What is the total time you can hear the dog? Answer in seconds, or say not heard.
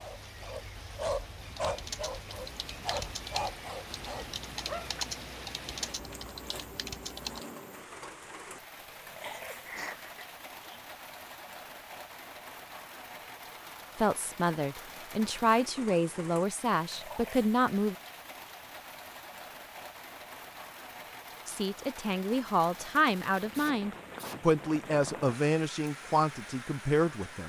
5 s.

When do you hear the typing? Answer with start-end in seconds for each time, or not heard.
1.4-7.4.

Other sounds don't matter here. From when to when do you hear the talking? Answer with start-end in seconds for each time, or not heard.
13.9-17.9, 21.4-27.4.